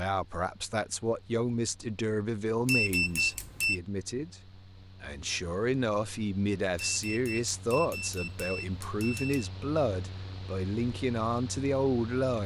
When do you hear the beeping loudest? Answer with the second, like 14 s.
3 s.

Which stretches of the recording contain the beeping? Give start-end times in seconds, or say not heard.
2.6-3.8, 6.8-9.5.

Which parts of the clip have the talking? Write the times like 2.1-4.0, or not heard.
0.0-12.4.